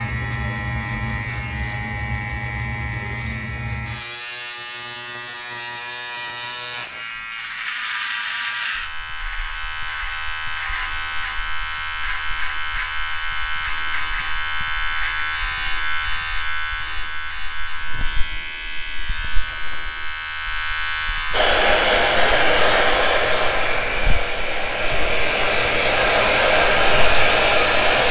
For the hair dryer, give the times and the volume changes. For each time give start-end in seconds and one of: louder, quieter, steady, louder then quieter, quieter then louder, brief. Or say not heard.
21.3-28.0 quieter then louder.